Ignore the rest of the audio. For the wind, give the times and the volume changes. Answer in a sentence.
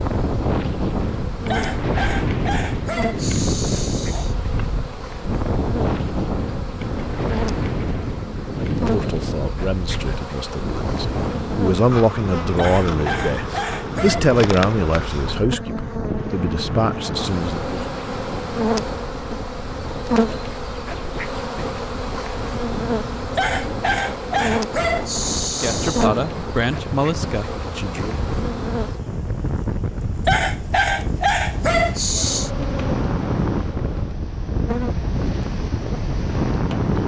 You can hear the wind from 0.0 to 37.0 s, getting quieter then louder.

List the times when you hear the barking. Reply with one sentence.
The barking can be heard from 1.4 to 4.3 s, from 12.6 to 14.2 s, from 23.4 to 26.1 s and from 30.2 to 32.5 s.